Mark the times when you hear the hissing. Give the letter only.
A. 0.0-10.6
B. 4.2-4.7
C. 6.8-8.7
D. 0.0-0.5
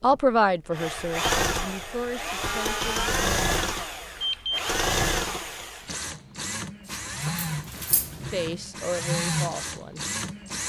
C.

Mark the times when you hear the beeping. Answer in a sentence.
The beeping can be heard from 4.2 to 4.7 s.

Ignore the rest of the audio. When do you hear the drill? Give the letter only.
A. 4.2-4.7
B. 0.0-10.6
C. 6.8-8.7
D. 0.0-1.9
B.